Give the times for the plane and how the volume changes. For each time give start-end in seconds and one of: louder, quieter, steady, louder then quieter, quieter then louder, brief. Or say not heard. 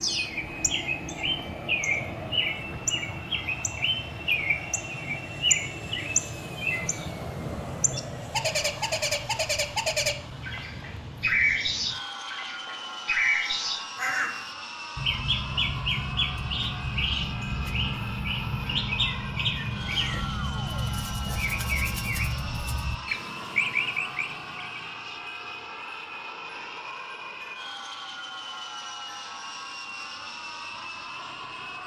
0.0-31.8 steady.